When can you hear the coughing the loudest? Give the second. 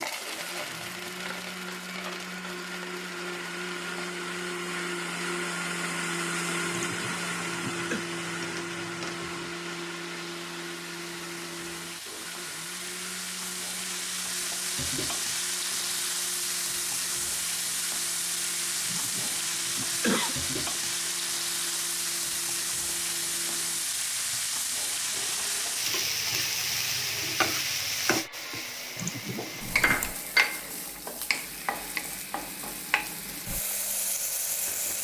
20 s.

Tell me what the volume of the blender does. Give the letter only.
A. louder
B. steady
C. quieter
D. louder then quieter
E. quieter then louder
C.